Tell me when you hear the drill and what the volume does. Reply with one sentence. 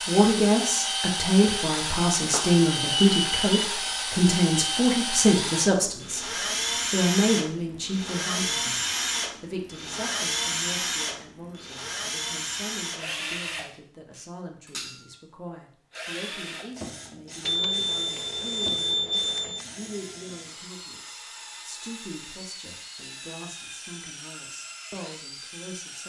The drill can be heard from 0.0 to 26.0 s, getting quieter.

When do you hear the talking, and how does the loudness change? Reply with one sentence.
The talking can be heard from 0.1 to 6.2 s, at a steady volume; briefly from 6.9 to 8.8 s; and from 9.4 to 26.0 s, at a steady volume.